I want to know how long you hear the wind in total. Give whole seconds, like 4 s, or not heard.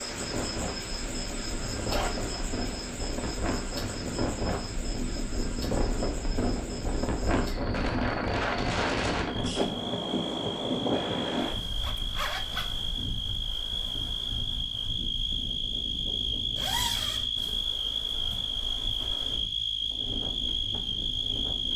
22 s.